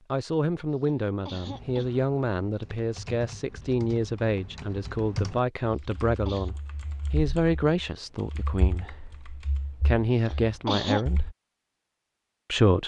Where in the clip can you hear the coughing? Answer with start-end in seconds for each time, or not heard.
0.7-2.0, 5.7-6.5, 10.1-11.1.